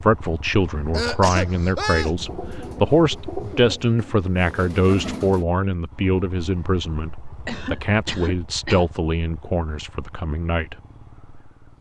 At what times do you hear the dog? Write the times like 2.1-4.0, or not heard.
not heard.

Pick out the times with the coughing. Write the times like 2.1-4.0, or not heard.
0.9-2.1, 7.5-8.8.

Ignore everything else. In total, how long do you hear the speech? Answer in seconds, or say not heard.
10 s.